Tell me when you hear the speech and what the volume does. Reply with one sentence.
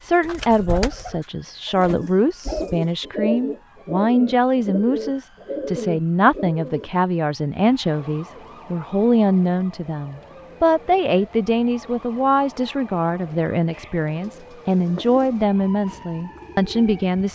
The speech can be heard from 0.0 to 17.3 s, at a steady volume.